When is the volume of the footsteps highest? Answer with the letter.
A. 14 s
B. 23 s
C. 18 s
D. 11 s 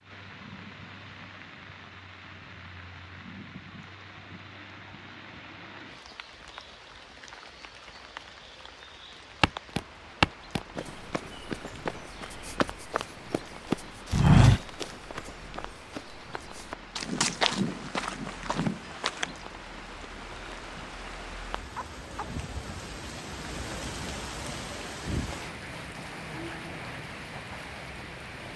A.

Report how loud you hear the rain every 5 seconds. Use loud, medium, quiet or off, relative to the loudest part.
medium, medium, medium, medium, loud, loud.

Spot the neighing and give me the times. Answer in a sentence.
The neighing can't be heard in this clip.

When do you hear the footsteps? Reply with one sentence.
The footsteps can be heard from 9.4 to 19.4 s.